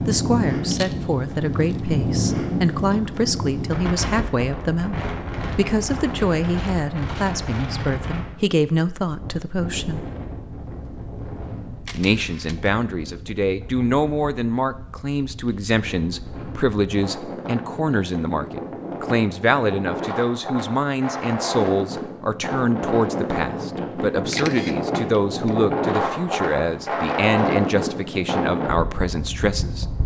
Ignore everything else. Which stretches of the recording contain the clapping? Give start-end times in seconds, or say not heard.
not heard.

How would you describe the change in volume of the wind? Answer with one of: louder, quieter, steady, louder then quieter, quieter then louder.
quieter then louder.